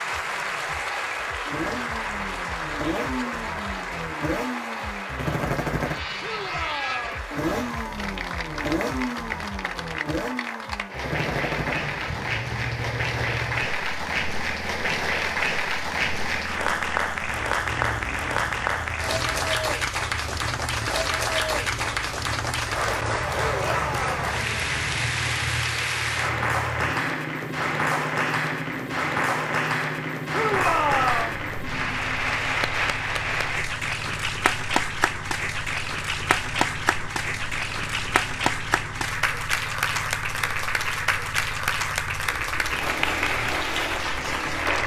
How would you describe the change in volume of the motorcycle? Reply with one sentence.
The volume of the motorcycle goes down.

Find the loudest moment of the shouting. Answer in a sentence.
The volume of the shouting peaks at 31 seconds.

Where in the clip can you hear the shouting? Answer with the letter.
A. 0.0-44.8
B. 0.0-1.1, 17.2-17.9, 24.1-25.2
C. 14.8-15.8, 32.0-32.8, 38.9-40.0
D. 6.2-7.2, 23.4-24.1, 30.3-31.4
D.